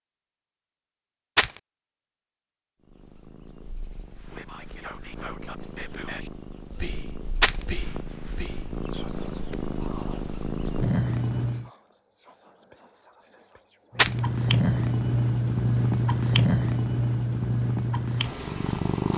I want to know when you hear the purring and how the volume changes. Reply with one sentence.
The purring can be heard from 2.8 to 11.7 s, getting louder; and from 13.9 to 19.1 s, getting quieter.